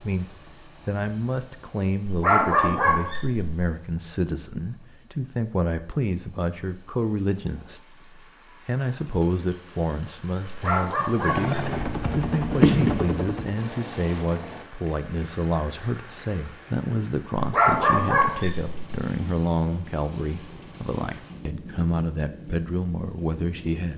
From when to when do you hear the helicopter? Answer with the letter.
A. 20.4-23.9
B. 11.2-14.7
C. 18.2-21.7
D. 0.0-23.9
B.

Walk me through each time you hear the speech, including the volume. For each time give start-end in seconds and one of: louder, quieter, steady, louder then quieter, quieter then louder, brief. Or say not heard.
0.0-23.9 steady.